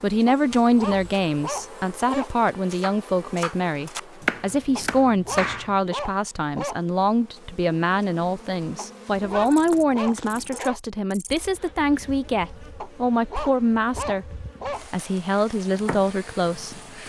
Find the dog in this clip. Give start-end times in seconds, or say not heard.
0.2-2.3, 4.8-6.8, 8.8-10.8, 12.8-14.8.